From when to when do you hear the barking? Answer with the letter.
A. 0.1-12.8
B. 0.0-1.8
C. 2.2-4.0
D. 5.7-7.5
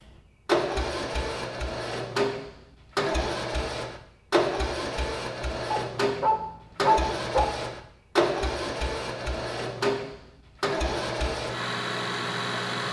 D.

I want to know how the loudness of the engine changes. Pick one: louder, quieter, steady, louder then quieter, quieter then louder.
steady.